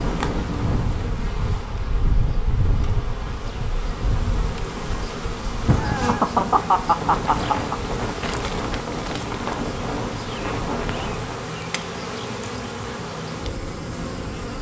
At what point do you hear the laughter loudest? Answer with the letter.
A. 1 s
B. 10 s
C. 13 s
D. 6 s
D.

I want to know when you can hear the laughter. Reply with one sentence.
The laughter can be heard from 5.7 to 7.8 s.